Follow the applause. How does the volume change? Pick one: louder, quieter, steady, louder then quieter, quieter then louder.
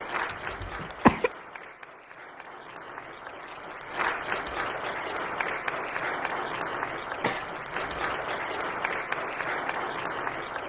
louder.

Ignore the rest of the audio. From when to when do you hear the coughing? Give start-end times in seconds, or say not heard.
0.2-1.3, 7.2-8.2.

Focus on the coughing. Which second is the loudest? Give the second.
1 s.